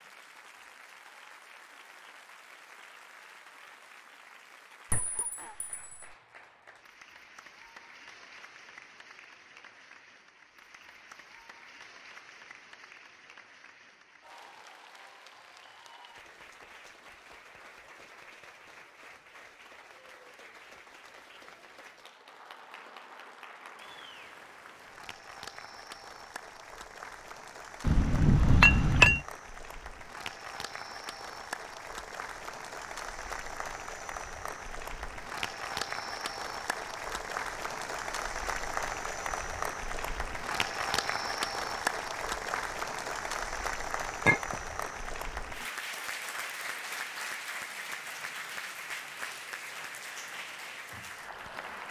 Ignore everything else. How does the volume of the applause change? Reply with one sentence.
The loudness of the applause goes up.